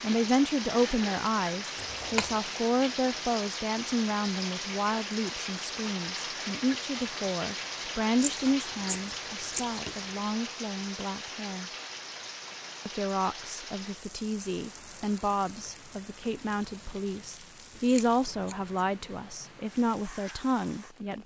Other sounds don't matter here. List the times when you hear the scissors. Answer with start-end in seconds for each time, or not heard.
1.8-2.4, 8.2-9.9, 17.9-18.6.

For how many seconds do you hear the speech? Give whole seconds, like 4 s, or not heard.
20 s.